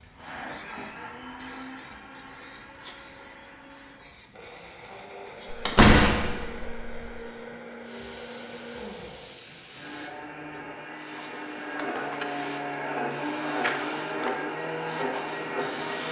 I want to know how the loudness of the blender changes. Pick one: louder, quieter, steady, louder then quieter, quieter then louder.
louder.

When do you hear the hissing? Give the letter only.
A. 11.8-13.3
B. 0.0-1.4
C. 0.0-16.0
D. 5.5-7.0
C.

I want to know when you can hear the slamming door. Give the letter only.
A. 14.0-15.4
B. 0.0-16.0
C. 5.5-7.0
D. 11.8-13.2
C.